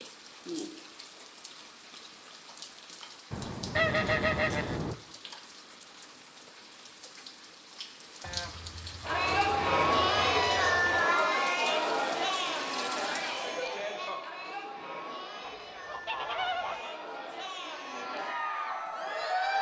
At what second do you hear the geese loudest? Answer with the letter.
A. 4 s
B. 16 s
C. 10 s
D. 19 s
A.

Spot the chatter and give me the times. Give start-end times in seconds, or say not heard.
9.0-19.5.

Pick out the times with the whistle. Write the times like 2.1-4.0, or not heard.
not heard.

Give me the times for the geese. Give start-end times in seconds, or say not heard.
3.3-5.0, 8.2-10.8, 15.4-16.9.